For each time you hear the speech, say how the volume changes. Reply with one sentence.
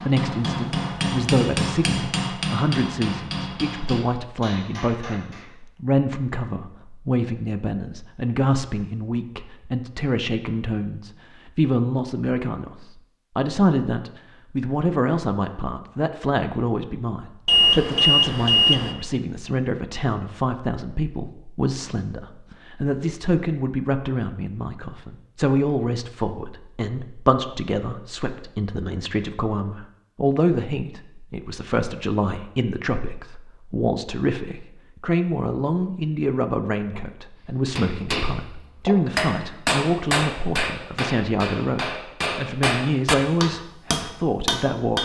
You can hear the speech from 0.0 to 45.0 s, at a steady volume.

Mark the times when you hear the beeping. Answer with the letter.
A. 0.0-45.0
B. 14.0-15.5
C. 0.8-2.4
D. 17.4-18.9
D.